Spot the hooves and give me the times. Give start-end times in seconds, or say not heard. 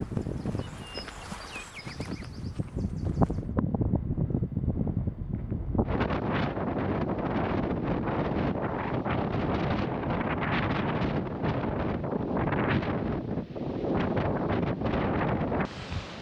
0.0-3.5.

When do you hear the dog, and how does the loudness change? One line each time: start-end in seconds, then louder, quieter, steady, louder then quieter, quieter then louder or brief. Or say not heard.
not heard.